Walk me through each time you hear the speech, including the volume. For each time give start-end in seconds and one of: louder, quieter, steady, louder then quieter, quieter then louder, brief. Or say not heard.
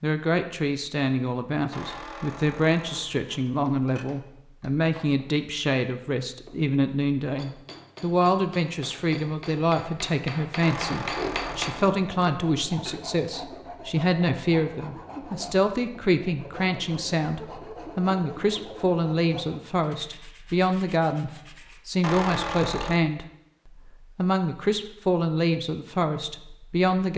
0.0-27.1 steady.